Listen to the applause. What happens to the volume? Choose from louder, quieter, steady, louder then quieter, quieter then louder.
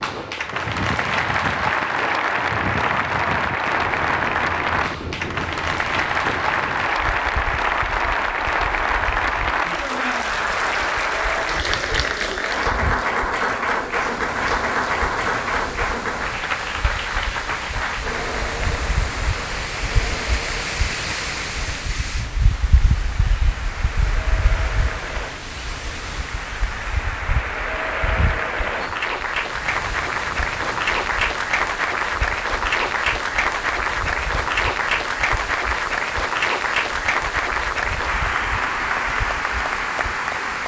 quieter then louder.